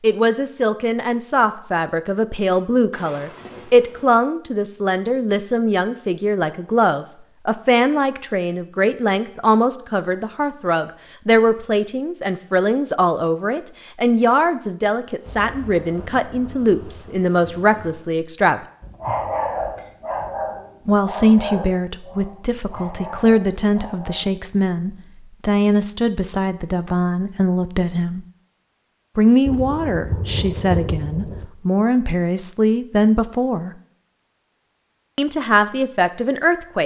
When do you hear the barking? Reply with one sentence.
You can hear the barking from 18.8 to 24.2 s.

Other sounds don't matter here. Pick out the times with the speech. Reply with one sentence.
You can hear the speech from 0.0 to 18.6 s, from 20.9 to 28.2 s, from 29.1 to 33.7 s and from 35.1 to 36.8 s.